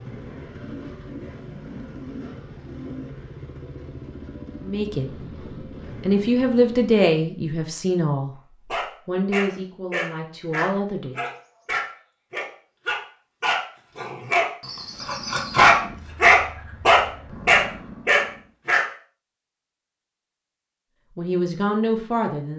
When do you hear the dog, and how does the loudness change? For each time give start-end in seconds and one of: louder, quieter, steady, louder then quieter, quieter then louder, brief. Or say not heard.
8.7-18.9 louder.